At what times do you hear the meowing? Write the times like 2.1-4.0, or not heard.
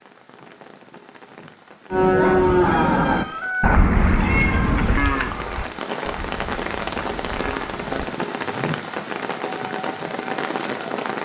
4.2-5.7.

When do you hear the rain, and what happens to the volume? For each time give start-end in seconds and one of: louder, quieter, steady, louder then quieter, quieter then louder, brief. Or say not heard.
0.0-11.2 louder.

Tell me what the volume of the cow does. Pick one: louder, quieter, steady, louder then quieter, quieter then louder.
quieter.